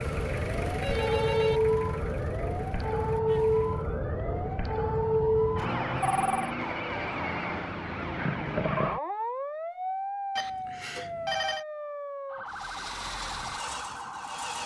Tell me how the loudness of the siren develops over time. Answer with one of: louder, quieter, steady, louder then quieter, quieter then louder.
quieter.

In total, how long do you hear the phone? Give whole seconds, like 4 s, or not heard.
3 s.